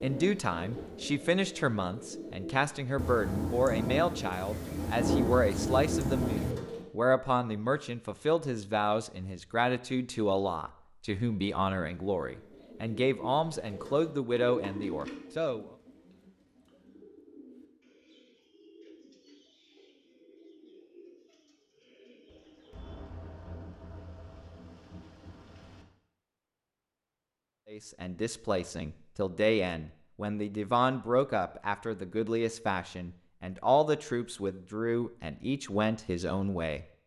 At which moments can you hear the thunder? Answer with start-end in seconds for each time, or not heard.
3.0-6.5, 22.2-25.9.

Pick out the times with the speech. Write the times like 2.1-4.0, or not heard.
0.0-15.7, 27.7-36.9.